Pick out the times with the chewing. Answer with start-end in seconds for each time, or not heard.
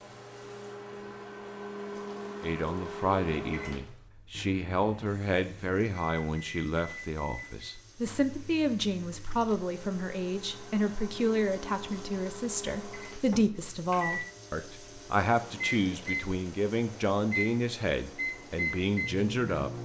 not heard.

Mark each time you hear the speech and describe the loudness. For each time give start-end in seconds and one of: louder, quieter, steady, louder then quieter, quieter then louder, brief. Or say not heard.
2.4-19.7 steady.